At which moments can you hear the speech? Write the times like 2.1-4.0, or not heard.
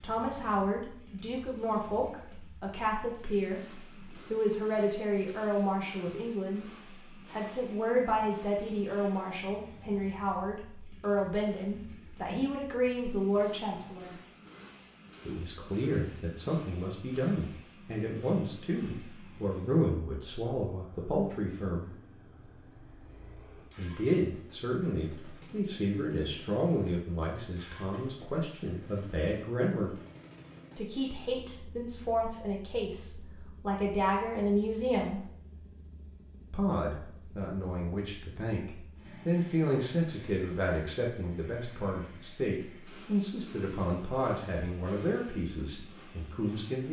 0.0-6.7, 7.3-14.2, 15.2-21.9, 23.8-29.9, 30.8-35.2, 36.5-46.8.